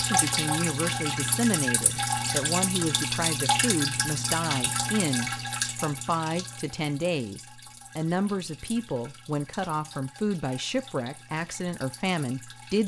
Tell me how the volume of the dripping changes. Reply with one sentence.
The volume of the dripping goes down.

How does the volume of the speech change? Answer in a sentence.
The loudness of the speech stays about the same.